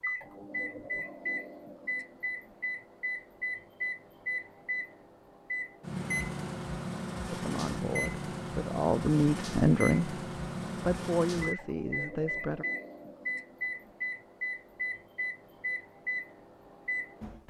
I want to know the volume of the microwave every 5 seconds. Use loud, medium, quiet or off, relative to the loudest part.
medium, medium, medium, loud.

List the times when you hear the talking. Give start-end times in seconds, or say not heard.
7.3-10.2, 10.8-12.7.